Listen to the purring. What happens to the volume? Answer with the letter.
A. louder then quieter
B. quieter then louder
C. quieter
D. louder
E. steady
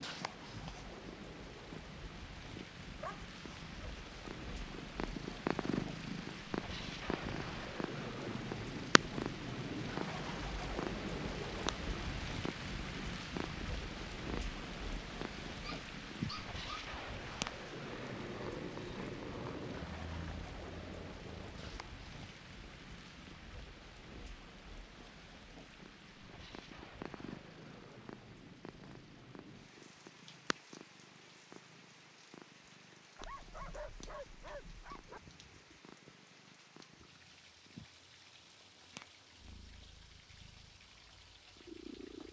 C.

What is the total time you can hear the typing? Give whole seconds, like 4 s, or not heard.
not heard.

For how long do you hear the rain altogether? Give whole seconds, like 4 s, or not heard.
42 s.